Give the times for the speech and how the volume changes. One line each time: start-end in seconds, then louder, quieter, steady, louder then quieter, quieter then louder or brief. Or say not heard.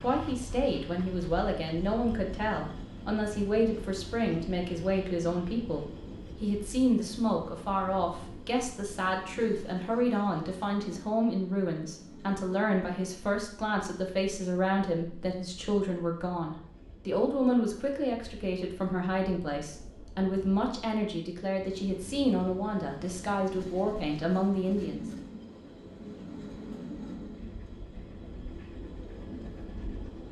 0.0-25.1 steady.